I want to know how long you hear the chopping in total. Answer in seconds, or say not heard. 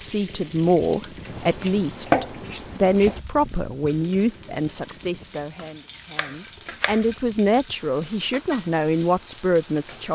3 s.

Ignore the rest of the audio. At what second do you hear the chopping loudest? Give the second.
2 s.